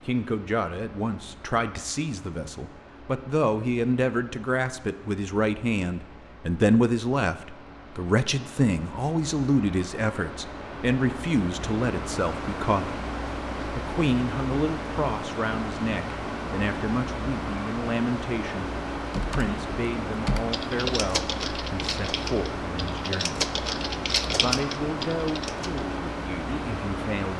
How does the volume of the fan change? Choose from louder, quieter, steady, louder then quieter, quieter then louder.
louder.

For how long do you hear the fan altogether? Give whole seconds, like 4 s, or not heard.
27 s.